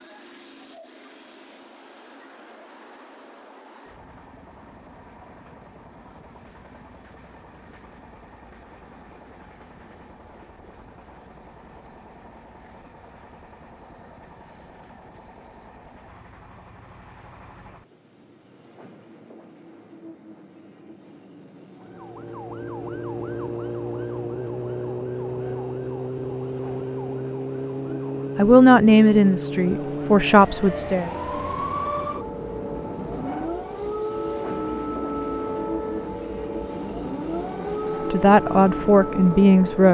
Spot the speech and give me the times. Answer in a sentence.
You can hear the speech from 28.4 to 31.1 s and from 38.1 to 39.8 s.